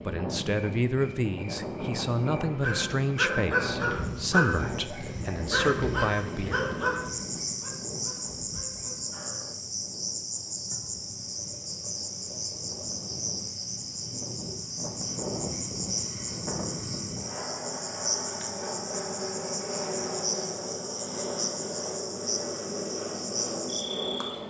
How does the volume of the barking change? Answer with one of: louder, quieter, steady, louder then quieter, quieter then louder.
quieter.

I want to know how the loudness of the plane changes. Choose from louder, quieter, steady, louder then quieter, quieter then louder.
quieter then louder.